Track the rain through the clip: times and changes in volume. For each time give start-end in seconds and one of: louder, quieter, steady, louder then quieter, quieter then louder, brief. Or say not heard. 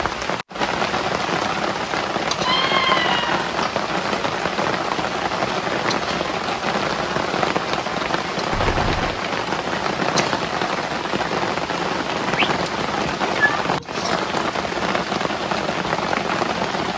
0.0-16.9 steady.